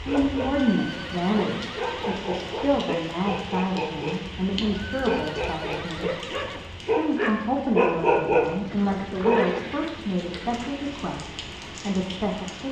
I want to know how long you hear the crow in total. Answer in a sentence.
You can't hear the crow here.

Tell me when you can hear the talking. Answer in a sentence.
The talking can be heard from 0.1 to 6.1 s and from 6.8 to 12.6 s.